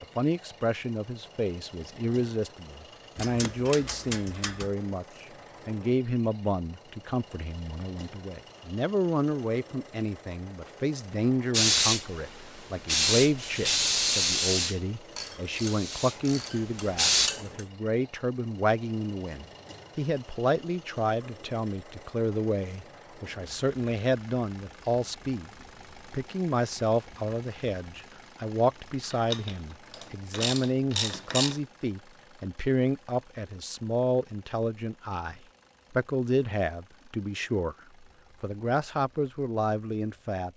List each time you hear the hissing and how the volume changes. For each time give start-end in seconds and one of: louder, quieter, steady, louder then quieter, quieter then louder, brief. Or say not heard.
11.5-17.3 louder then quieter.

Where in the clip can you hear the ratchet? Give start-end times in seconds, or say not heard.
3.1-4.7, 15.2-17.6, 29.0-31.6.